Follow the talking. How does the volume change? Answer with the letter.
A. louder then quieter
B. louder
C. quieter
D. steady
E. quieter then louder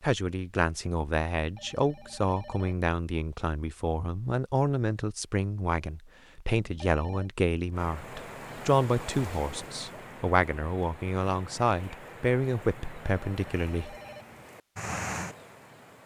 D.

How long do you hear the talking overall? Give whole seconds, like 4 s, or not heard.
14 s.